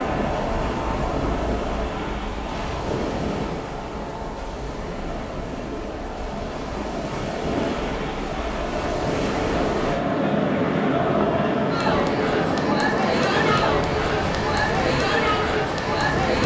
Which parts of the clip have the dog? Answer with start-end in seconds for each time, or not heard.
not heard.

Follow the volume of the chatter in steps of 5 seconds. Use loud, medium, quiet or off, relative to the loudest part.
medium, medium, loud, loud.